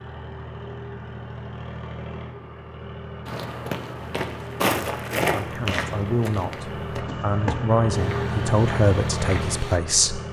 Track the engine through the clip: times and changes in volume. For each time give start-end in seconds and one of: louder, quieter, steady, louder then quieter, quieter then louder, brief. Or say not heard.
0.0-10.2 louder.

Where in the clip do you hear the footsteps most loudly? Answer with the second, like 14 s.
5 s.